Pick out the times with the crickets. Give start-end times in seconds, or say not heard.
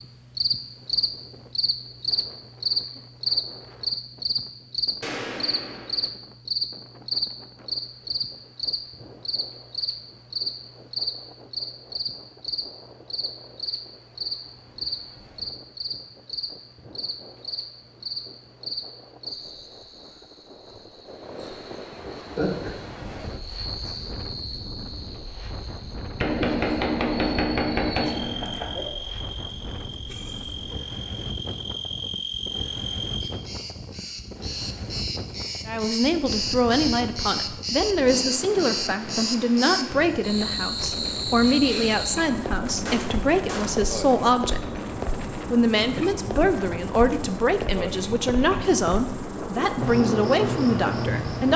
0.0-51.5.